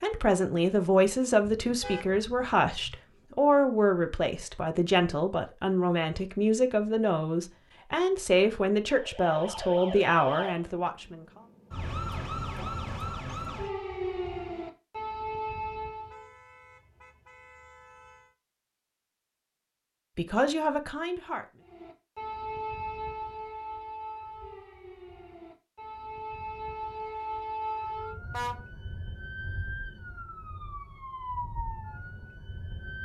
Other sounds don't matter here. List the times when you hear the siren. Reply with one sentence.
The siren can be heard from 8.9 to 16.3 s and from 21.6 to 33.0 s.